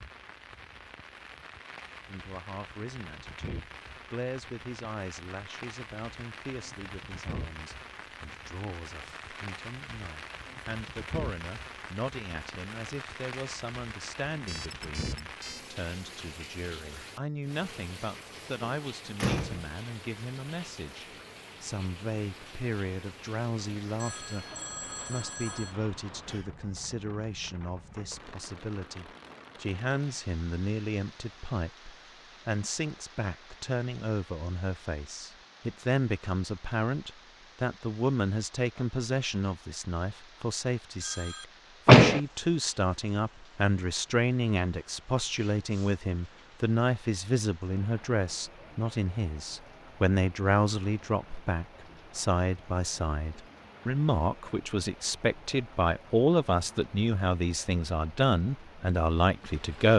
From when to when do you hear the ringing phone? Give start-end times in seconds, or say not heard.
14.4-15.7, 23.9-25.8, 41.0-41.5.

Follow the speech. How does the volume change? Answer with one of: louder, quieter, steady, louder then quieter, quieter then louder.
louder.